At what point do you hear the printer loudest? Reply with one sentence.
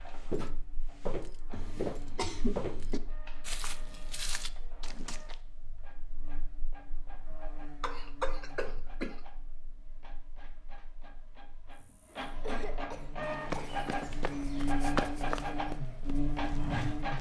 The volume of the printer peaks at 15 seconds.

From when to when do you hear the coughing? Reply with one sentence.
The coughing can be heard from 1.5 to 3.0 s, from 7.3 to 9.2 s and from 11.8 to 13.8 s.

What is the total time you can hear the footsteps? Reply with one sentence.
The footsteps can be heard for 9 seconds in total.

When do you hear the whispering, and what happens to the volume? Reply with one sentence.
You can't hear the whispering here.